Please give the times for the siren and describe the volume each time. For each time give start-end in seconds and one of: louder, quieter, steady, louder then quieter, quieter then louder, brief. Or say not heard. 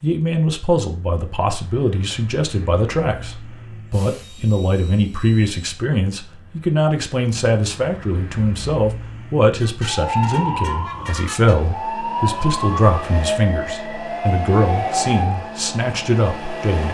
9.8-15.5 steady.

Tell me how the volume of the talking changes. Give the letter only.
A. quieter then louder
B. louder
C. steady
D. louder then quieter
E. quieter
C.